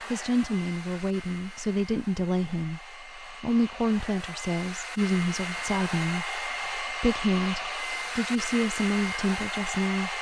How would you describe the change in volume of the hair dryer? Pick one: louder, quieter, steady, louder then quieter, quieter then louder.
louder.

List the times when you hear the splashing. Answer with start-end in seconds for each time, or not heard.
not heard.